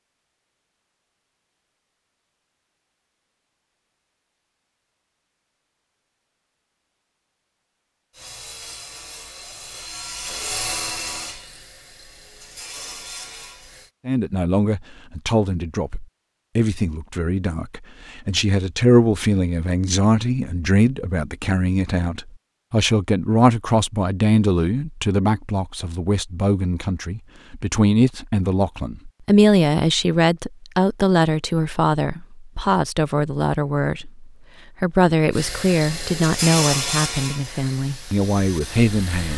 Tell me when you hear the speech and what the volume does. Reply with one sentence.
You can hear the speech from 14.1 to 39.3 s, at a steady volume.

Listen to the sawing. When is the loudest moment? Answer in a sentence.
The loudest moment of the sawing is at 37 seconds.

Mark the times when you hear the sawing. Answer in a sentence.
The sawing can be heard from 8.1 to 13.9 s and from 35.3 to 39.3 s.